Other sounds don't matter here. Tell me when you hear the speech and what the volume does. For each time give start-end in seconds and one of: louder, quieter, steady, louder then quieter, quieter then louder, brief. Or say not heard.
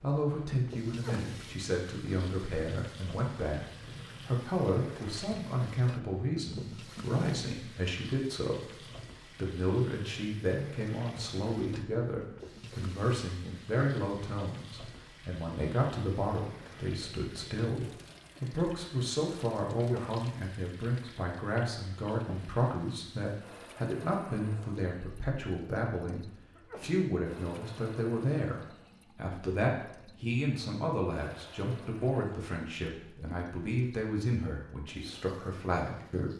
0.0-36.3 steady.